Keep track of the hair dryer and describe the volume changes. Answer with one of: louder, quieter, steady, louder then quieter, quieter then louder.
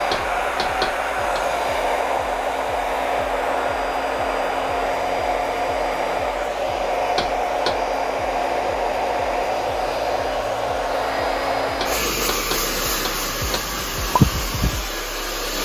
steady.